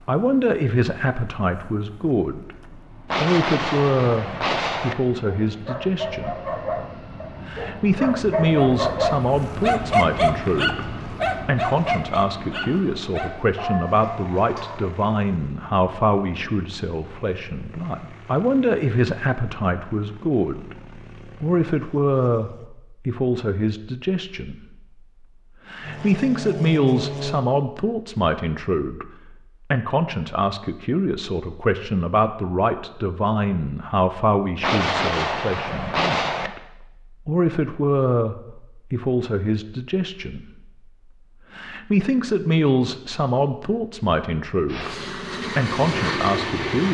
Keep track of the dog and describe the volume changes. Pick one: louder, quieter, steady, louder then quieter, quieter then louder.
louder then quieter.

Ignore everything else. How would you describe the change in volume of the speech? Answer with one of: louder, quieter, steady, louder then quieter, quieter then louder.
steady.